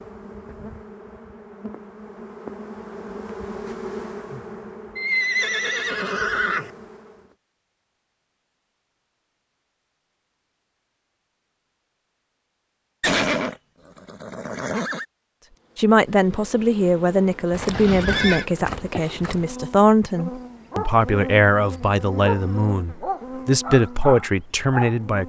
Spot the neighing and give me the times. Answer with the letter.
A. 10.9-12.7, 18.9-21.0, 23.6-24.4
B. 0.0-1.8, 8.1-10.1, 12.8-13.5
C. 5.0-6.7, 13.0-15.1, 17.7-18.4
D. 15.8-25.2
C.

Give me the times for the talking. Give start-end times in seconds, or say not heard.
15.8-25.2.